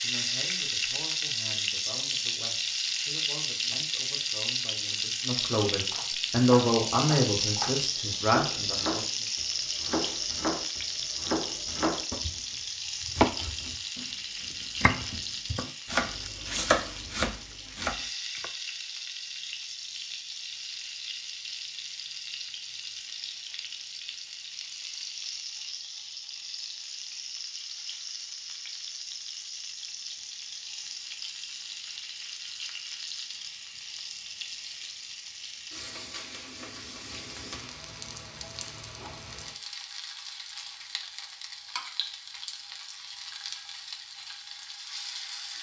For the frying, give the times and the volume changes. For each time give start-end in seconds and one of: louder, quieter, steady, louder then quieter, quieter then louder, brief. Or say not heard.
0.0-45.5 quieter.